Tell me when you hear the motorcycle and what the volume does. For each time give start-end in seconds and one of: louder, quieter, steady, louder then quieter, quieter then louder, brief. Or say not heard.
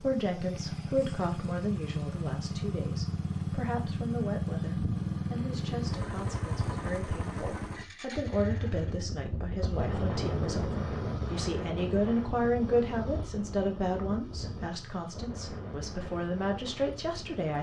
0.0-17.5 quieter.